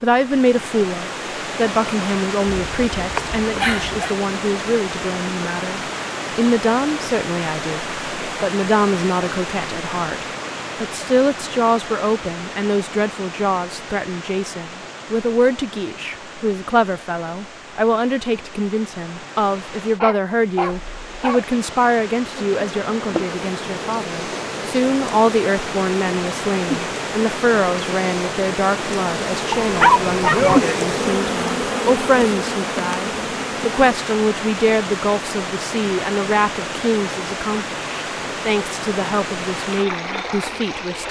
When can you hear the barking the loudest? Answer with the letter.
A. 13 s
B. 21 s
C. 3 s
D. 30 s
D.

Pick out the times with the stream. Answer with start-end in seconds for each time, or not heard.
0.0-41.0.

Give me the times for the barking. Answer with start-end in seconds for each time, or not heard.
2.5-4.2, 20.0-21.4, 29.5-30.6.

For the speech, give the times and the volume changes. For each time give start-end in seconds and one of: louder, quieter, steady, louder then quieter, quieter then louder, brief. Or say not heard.
0.0-41.0 steady.